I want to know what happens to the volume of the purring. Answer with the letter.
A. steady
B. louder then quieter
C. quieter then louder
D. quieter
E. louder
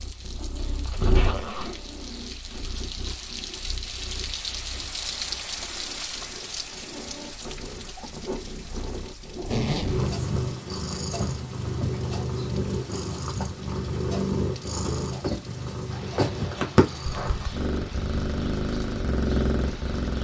C.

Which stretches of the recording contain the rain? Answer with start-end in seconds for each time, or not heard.
0.0-20.1.